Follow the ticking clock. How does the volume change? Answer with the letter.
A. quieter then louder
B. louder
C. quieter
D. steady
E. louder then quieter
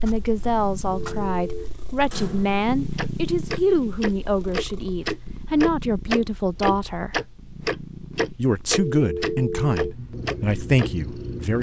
B.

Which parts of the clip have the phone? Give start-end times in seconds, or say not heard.
0.9-1.7, 8.9-9.9.